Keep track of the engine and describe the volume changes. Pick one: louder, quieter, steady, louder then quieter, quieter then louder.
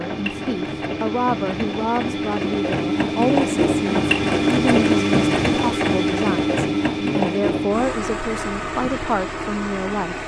louder then quieter.